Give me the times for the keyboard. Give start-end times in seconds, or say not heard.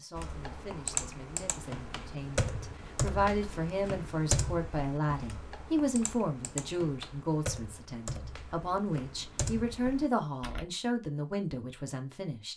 0.1-10.7.